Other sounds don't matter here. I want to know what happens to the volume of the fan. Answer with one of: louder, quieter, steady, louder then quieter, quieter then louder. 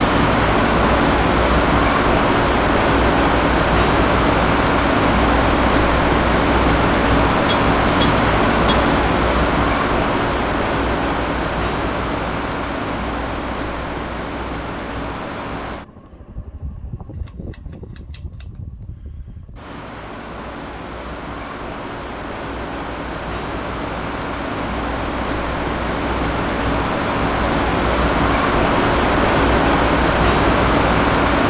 quieter then louder.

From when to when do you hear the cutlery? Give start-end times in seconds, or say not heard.
7.5-8.9.